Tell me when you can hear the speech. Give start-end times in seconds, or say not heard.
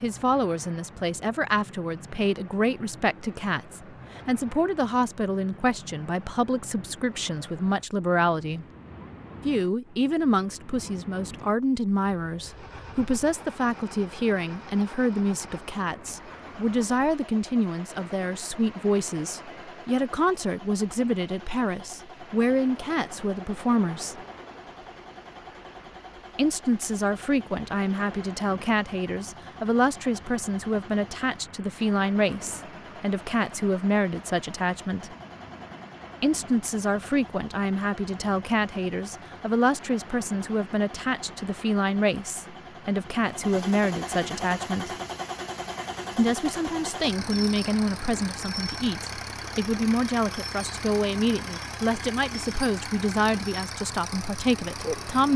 0.0-8.7, 9.4-24.2, 26.4-35.1, 36.2-44.9, 46.1-55.3.